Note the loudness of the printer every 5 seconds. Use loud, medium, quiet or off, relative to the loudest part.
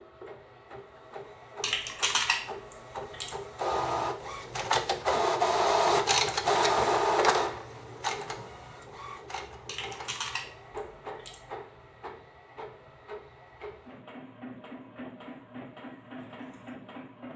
medium, loud, quiet, quiet.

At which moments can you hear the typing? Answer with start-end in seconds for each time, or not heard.
1.6-3.4, 9.7-11.4.